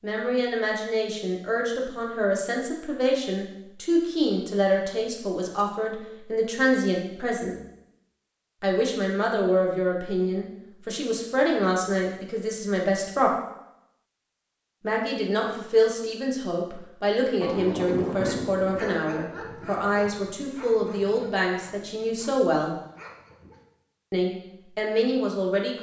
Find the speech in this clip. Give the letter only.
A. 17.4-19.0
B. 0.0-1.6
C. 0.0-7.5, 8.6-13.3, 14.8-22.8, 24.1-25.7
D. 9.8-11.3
C.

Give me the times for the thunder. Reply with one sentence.
You can hear the thunder from 17.4 to 19.0 s.